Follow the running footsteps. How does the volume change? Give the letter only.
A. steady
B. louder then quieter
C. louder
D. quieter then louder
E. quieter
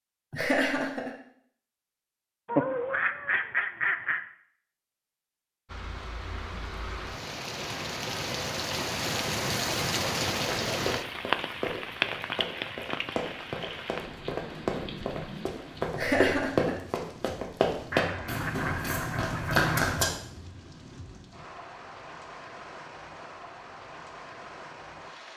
C.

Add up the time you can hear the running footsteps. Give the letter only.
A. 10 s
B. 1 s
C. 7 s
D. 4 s
A.